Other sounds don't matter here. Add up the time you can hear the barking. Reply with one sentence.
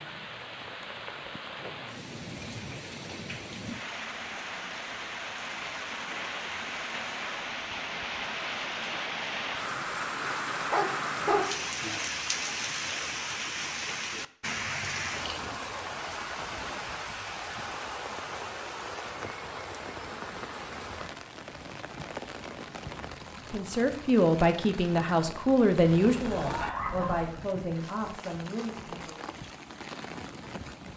The barking can be heard for 3 seconds in total.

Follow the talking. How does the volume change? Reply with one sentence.
The loudness of the talking goes down.